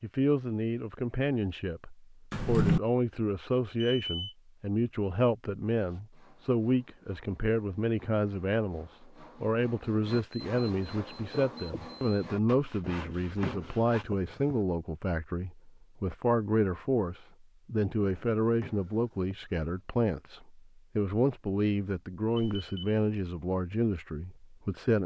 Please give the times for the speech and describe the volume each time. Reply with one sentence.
You can hear the speech from 0.0 to 25.0 s, at a steady volume.